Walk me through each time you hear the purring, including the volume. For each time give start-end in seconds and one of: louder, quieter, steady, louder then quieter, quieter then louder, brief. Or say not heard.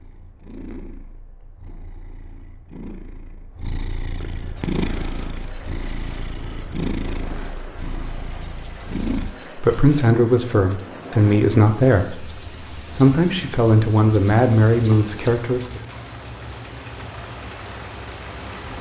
0.0-9.3 louder then quieter.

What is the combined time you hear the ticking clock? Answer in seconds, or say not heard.
not heard.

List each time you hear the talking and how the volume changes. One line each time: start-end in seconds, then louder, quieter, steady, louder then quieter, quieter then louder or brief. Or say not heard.
9.6-15.8 steady.